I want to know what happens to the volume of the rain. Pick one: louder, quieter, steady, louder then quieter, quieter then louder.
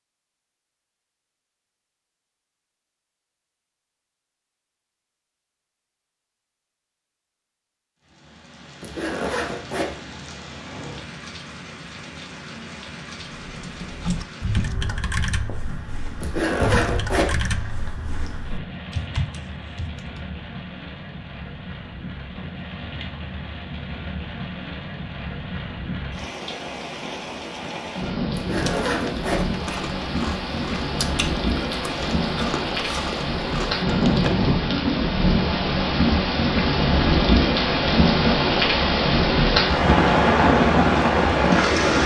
louder.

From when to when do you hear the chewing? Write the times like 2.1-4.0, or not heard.
28.4-34.6.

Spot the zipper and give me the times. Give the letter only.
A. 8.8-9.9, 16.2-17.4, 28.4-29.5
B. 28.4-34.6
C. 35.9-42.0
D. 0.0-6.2
A.